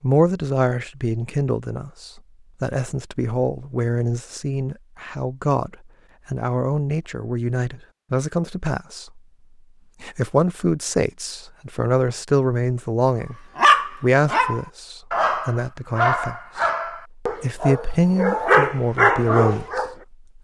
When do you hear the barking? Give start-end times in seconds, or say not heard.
13.6-19.9.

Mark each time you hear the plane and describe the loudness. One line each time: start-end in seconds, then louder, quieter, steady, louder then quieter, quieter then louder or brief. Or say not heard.
not heard.